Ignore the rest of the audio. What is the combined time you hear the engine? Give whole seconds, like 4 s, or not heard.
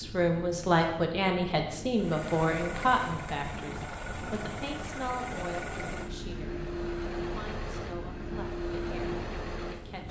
8 s.